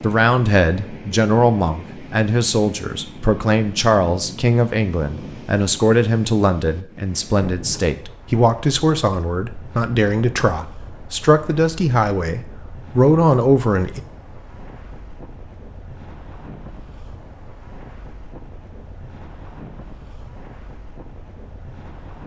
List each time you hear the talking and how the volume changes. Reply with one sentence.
You can hear the talking from 0.0 to 14.0 s, at a steady volume.